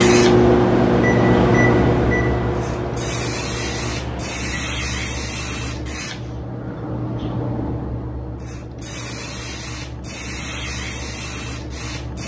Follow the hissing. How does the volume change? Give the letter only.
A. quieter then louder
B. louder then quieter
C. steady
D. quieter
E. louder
D.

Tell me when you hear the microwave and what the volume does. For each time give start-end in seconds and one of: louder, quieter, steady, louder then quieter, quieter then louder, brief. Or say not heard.
0.0-4.5 quieter.